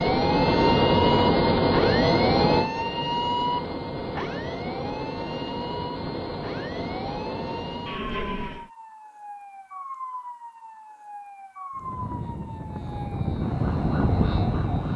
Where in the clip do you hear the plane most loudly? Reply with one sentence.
The volume of the plane peaks at 1 second.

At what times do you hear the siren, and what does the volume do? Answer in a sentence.
You can hear the siren from 0.0 to 14.9 s, getting quieter.